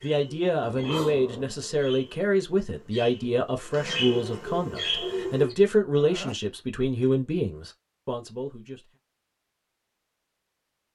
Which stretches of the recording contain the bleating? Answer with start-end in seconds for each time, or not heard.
not heard.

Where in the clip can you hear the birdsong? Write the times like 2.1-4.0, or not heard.
0.0-5.5.